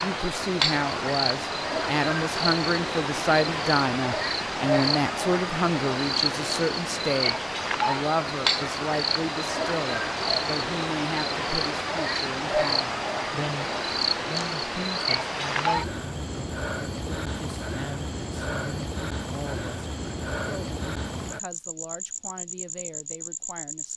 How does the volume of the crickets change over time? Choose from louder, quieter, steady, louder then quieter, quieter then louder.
quieter.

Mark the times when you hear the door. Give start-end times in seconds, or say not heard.
not heard.